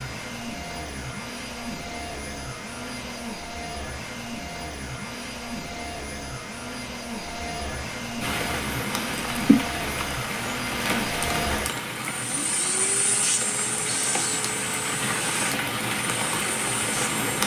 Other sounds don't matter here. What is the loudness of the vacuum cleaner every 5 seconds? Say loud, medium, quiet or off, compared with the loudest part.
loud, loud, loud, medium.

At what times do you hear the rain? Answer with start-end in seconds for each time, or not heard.
8.2-17.4.